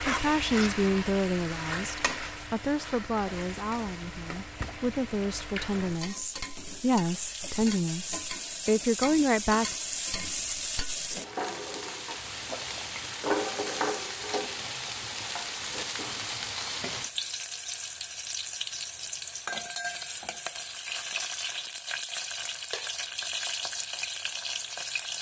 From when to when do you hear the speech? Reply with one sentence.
The speech can be heard from 0.1 to 9.8 s.